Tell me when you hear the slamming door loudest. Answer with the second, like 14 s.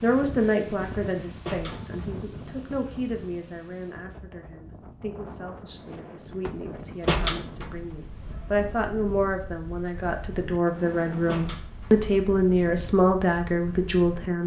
7 s.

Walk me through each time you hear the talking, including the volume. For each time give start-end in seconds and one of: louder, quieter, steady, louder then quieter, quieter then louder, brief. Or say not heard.
0.0-14.4 quieter then louder.